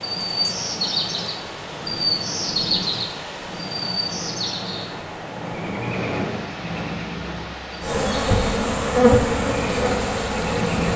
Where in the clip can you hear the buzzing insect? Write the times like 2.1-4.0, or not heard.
7.8-10.9.